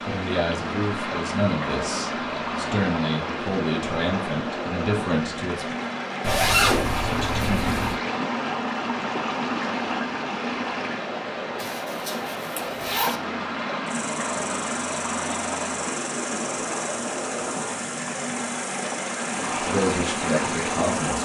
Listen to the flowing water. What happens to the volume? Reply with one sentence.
The loudness of the flowing water stays about the same.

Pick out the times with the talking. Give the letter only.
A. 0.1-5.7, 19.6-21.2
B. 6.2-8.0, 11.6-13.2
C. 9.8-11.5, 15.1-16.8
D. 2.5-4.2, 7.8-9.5
A.